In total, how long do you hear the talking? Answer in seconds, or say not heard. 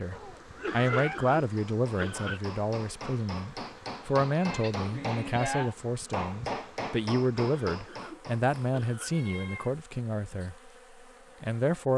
11 s.